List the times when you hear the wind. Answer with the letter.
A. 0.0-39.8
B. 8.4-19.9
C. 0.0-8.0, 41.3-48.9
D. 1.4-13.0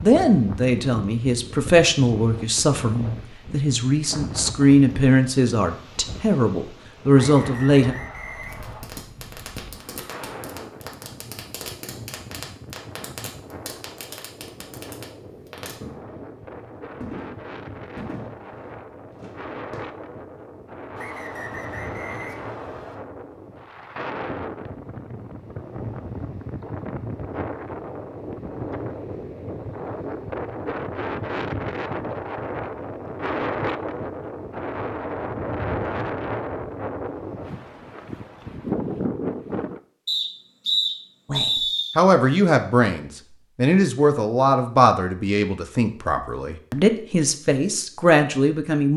A.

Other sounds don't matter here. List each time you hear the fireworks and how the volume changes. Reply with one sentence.
You can hear the fireworks from 8.4 to 19.9 s, at a steady volume.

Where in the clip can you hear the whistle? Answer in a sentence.
The whistle can be heard from 7.2 to 8.8 s, from 20.9 to 22.9 s and from 40.0 to 42.0 s.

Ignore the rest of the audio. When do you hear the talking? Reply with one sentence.
You can hear the talking from 0.0 to 8.0 s and from 41.3 to 48.9 s.